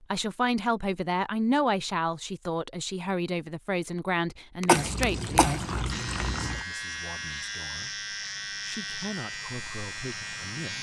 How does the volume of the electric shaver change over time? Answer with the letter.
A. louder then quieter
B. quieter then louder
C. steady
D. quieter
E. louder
C.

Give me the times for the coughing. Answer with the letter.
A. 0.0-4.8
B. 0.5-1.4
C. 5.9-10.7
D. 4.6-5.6
D.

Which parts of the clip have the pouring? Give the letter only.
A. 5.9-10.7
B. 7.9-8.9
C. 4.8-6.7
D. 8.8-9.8
C.